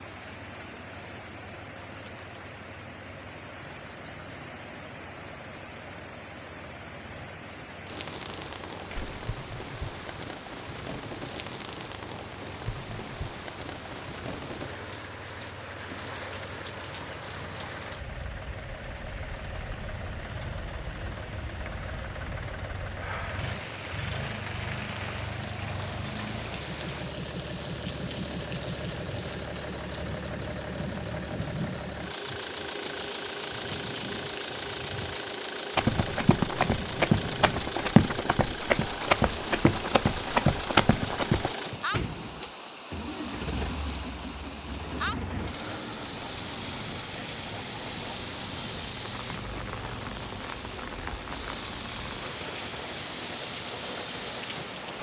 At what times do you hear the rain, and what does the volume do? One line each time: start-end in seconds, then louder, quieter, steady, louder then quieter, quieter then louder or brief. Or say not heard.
0.0-54.9 steady.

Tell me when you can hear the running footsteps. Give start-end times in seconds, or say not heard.
35.8-41.5.